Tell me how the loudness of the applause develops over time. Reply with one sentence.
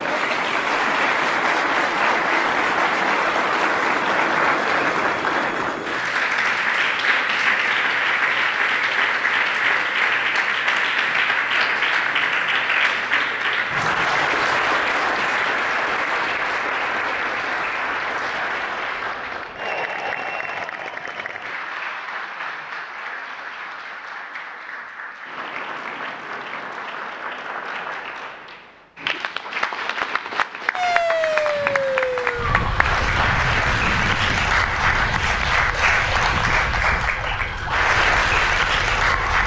The volume of the applause goes down, then up.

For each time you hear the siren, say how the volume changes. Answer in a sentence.
The siren can be heard from 30.7 to 39.4 s, getting quieter.